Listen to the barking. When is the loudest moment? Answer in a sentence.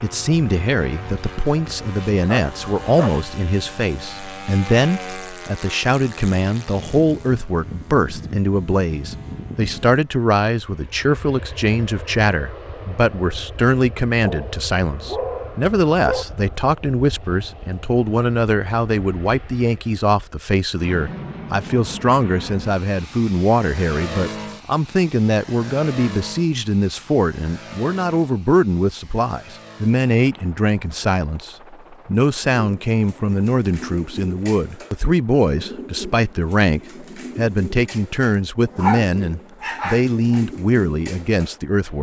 The loudest moment of the barking is at 39 seconds.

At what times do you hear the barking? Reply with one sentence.
You can hear the barking from 2.2 to 3.2 s, from 14.2 to 16.2 s and from 38.8 to 40.4 s.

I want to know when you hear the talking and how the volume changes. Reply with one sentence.
You can hear the talking from 0.0 to 41.9 s, at a steady volume.